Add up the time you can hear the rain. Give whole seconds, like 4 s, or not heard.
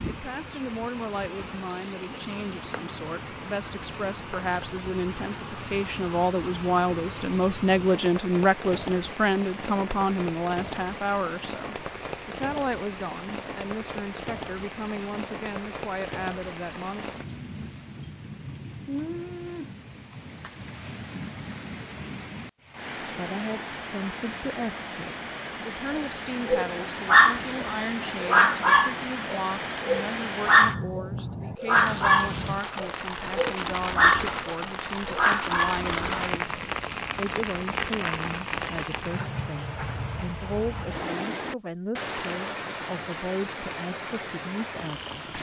45 s.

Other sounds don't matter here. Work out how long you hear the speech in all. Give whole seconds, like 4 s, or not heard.
39 s.